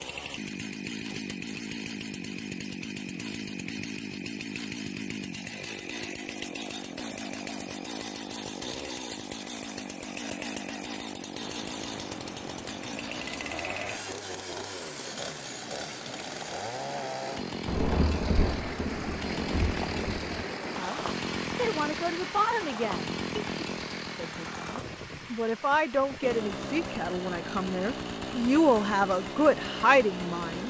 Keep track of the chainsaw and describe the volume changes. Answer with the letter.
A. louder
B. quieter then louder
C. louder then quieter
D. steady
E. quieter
D.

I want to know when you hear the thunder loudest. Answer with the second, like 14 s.
18 s.